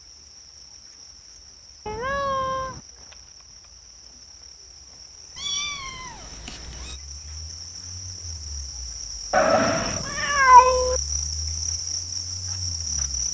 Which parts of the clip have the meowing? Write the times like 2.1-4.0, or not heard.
1.9-2.8, 5.3-7.0, 9.3-11.0.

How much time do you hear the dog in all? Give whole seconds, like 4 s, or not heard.
not heard.